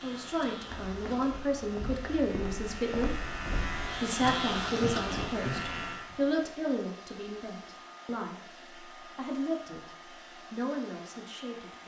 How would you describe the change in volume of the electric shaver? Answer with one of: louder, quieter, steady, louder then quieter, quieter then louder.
louder.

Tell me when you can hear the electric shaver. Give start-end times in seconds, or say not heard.
0.0-6.1.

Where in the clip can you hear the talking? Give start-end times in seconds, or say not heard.
0.0-3.2, 4.0-11.8.